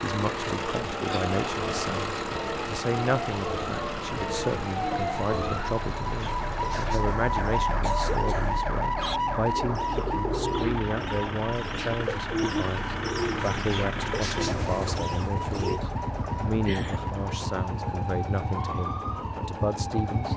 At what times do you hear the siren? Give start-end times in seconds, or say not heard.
0.0-20.3.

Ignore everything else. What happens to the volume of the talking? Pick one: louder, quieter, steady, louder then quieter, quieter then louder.
steady.